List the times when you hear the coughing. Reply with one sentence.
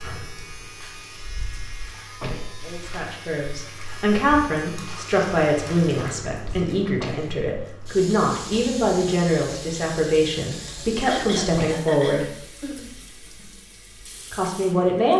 The coughing can be heard from 11.0 to 12.9 s.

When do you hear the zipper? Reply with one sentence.
You can't hear the zipper here.